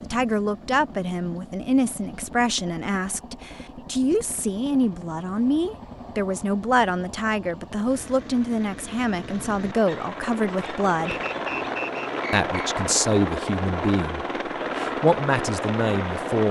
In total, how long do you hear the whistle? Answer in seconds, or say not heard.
2 s.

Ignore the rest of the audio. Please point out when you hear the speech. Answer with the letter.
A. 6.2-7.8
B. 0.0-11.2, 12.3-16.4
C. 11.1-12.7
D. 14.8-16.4
B.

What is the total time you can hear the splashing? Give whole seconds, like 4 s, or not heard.
not heard.